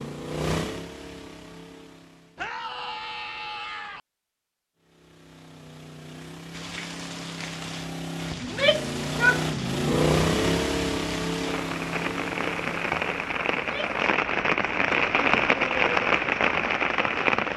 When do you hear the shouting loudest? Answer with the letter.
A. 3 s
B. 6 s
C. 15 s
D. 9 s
D.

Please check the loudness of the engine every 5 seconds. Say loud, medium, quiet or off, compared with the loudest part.
medium, medium, loud, off.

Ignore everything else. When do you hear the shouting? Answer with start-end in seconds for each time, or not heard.
2.4-4.0, 8.4-9.4, 13.6-14.0.